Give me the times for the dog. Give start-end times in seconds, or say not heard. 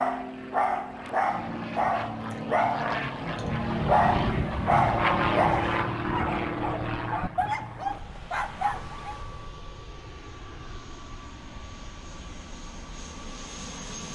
0.0-9.2.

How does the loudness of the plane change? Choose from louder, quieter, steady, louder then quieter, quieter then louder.
louder then quieter.